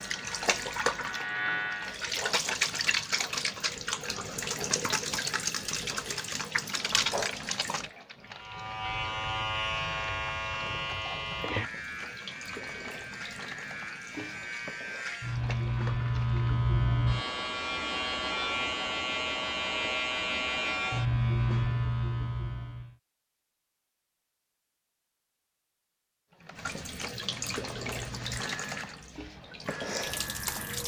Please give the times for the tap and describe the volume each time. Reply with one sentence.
The tap can be heard from 0.0 to 16.4 s, getting quieter; and from 26.3 to 30.8 s, getting quieter then louder.